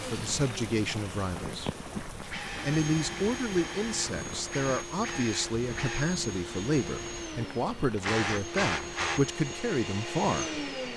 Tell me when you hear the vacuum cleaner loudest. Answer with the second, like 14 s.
9 s.